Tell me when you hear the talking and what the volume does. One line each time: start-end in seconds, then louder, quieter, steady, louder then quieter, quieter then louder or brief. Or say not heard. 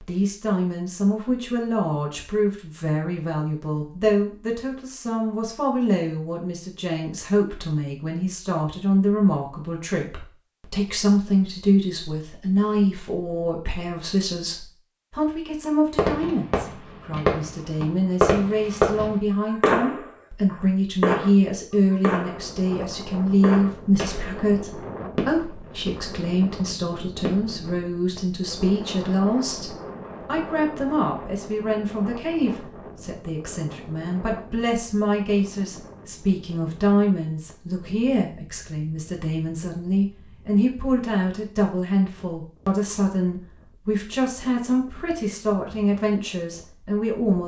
0.0-47.4 steady.